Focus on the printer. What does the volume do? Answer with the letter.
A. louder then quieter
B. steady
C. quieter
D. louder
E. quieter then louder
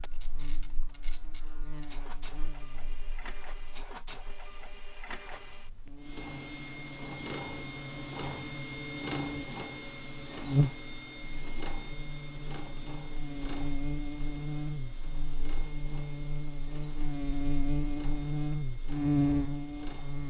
A.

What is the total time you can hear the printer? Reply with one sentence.
The printer can be heard for 20 seconds in total.